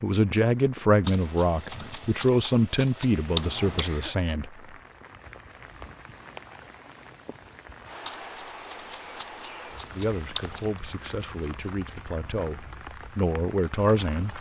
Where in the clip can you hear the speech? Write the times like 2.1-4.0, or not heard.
0.0-4.5, 9.9-14.3.